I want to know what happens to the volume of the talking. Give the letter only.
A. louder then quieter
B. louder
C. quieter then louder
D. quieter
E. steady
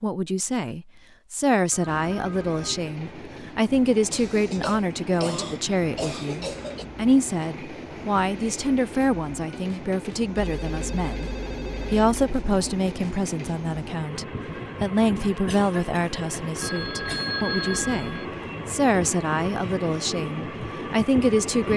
E.